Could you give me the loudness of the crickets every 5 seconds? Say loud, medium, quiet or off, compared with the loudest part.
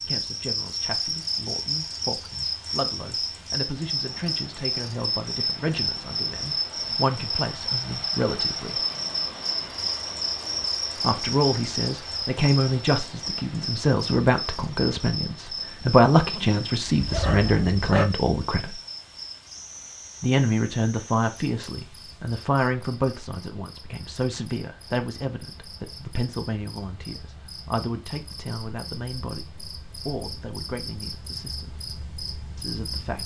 loud, loud, loud, medium, quiet, quiet, medium.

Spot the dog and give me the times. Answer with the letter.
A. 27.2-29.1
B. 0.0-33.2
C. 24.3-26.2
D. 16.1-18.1
D.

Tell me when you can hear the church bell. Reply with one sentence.
The church bell can't be heard in this clip.